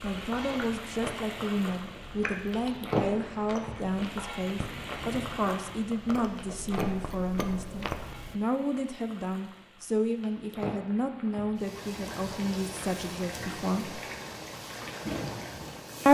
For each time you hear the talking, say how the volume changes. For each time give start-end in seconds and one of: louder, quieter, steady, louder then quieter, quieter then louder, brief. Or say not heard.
0.0-14.0 steady.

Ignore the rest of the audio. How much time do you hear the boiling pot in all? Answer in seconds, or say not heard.
16 s.